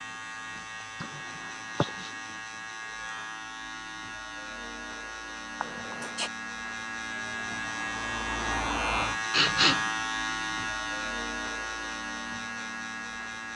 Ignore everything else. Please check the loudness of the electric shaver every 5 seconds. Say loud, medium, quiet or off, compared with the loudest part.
medium, loud, loud.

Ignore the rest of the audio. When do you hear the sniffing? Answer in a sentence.
You can hear the sniffing from 1.0 to 2.1 s, from 5.6 to 6.3 s and from 9.3 to 9.9 s.